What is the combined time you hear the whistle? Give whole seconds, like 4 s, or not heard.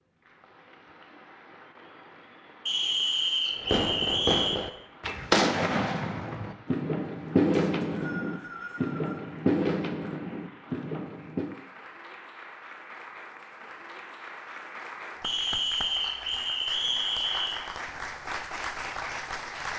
6 s.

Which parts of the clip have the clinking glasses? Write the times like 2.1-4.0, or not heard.
not heard.